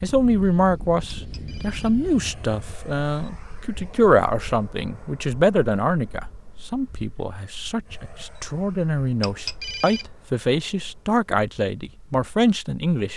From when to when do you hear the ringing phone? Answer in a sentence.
You can hear the ringing phone from 1.1 to 1.9 s and from 9.2 to 10.1 s.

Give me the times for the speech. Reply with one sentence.
You can hear the speech from 0.0 to 13.1 s.